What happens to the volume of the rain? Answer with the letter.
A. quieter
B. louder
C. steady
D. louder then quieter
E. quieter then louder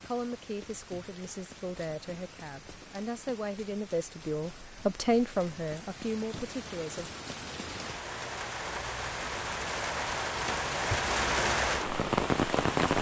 B.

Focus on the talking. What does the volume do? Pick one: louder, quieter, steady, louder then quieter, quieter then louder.
louder then quieter.